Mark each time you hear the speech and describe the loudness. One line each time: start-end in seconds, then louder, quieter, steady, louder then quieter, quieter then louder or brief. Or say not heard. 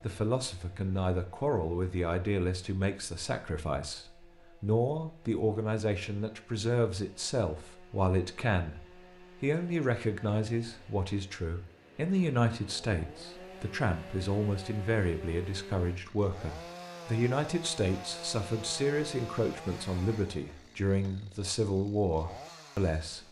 0.0-23.2 steady.